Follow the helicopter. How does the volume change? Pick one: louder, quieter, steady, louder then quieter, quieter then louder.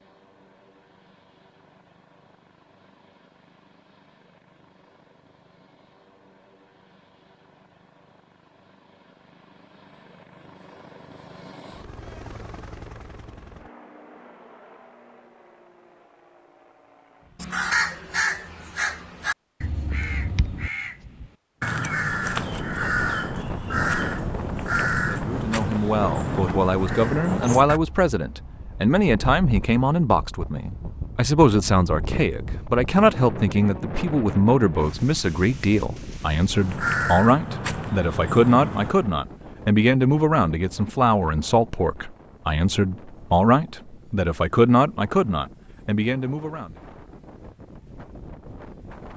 louder then quieter.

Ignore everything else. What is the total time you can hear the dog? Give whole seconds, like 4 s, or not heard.
not heard.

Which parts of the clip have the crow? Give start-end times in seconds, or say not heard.
17.4-27.8, 36.5-39.0.